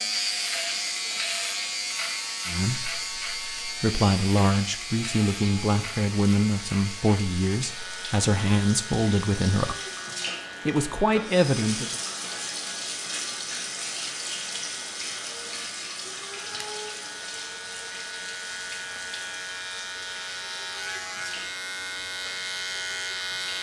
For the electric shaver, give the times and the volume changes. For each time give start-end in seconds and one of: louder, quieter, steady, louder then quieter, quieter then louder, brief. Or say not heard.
0.0-23.5 quieter then louder.